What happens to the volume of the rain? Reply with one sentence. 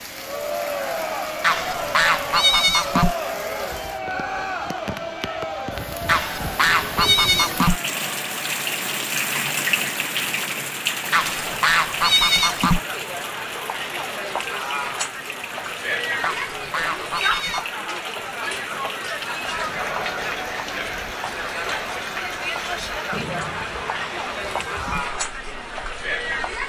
The loudness of the rain goes up, then down.